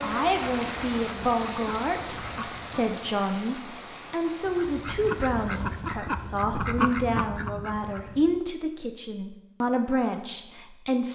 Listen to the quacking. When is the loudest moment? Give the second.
7 s.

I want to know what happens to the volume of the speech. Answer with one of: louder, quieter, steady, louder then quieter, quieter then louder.
steady.